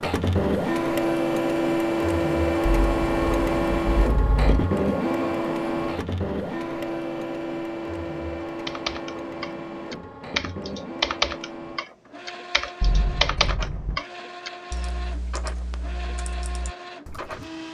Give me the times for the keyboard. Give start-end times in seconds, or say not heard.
8.7-17.4.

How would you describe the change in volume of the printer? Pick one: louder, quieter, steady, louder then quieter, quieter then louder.
quieter.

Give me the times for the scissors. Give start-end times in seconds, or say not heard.
2.6-4.7, 12.8-14.0.